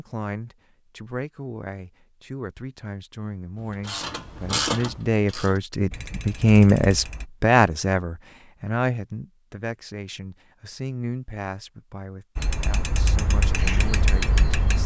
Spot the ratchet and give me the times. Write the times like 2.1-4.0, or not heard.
3.5-7.2, 12.3-14.8.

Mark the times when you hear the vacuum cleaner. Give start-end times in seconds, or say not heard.
not heard.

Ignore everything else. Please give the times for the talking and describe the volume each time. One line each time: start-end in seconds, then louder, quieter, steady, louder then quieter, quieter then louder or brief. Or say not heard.
0.0-14.8 louder then quieter.